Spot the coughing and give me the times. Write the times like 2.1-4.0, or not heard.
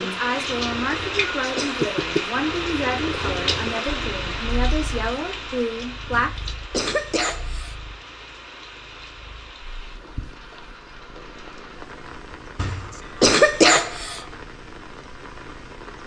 0.9-1.8, 6.1-7.8, 12.6-14.2.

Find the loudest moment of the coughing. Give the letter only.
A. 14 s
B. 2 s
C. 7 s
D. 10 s
A.